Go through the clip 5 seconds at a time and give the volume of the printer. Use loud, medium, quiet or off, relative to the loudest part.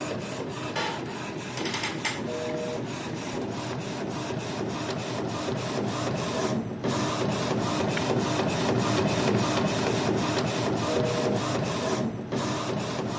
medium, loud, loud.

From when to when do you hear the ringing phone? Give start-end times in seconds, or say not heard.
2.2-2.8, 10.8-11.4.